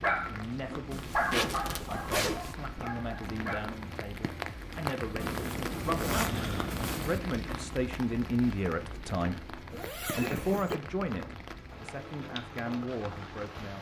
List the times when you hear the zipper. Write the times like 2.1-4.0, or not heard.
0.9-2.5, 5.2-7.2, 9.7-10.8.